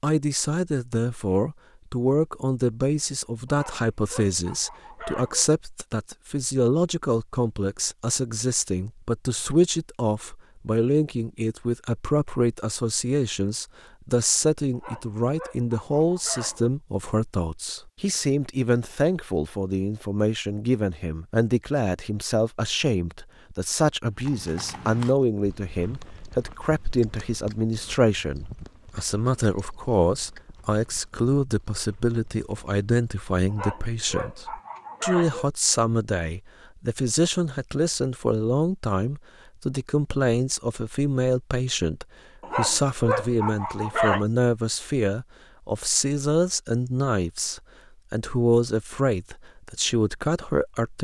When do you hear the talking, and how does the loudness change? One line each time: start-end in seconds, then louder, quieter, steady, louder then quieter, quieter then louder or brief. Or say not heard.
0.0-51.0 steady.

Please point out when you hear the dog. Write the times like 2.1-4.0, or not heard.
3.5-5.5, 14.7-16.7, 33.5-35.5, 42.4-44.2.